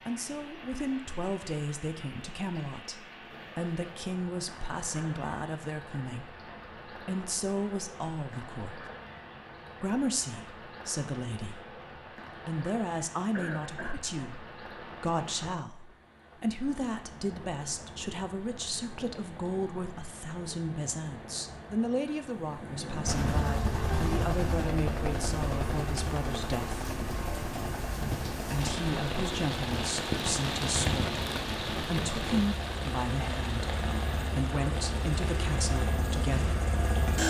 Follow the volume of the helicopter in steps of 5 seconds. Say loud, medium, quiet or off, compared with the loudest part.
off, off, off, off, loud, medium, medium, loud.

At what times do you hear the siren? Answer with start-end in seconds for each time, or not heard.
not heard.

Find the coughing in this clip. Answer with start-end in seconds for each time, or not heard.
13.3-14.0.